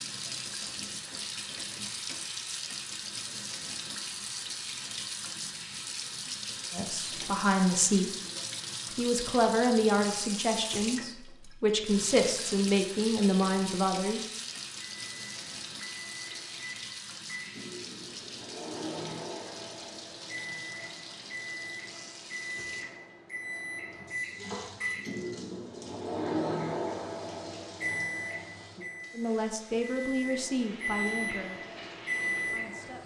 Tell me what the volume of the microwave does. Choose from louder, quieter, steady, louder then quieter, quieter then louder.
louder.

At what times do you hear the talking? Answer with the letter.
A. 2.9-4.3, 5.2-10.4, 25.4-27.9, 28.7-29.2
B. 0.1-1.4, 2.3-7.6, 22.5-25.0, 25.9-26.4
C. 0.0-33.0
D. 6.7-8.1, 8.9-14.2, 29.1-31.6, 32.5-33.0
D.